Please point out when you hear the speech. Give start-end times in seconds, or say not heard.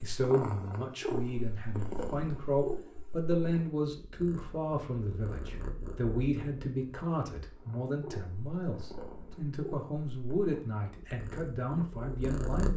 0.0-12.7.